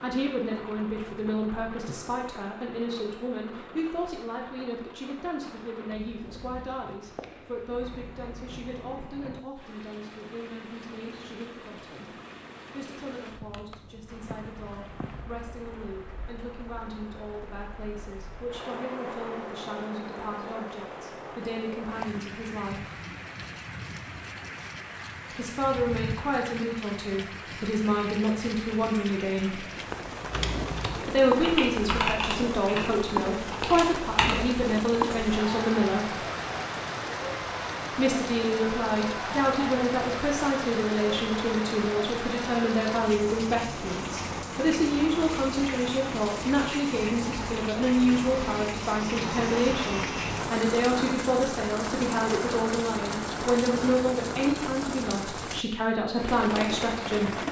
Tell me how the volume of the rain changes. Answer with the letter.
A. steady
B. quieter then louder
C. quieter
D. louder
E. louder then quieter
D.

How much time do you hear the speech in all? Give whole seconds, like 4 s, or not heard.
52 s.